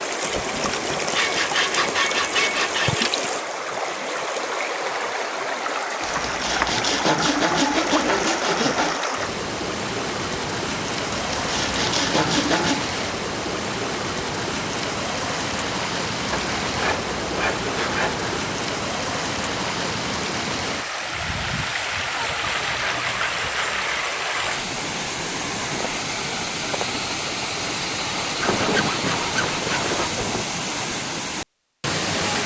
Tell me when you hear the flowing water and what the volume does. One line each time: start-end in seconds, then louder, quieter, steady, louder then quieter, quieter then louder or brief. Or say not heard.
0.0-32.4 steady.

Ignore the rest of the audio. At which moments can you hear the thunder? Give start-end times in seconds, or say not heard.
0.2-1.9, 28.4-30.4.